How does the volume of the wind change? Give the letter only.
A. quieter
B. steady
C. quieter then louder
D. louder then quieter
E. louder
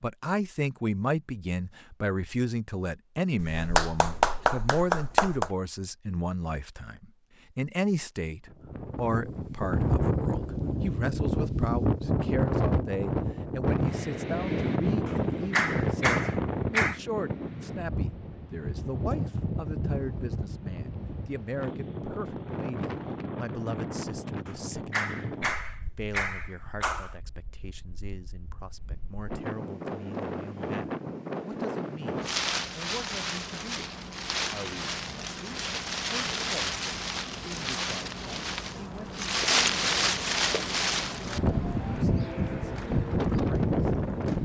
C.